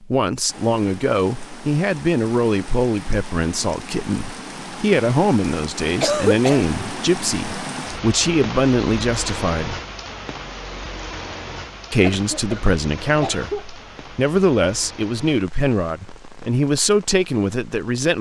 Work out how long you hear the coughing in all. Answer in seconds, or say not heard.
2 s.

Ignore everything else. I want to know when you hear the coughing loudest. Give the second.
6 s.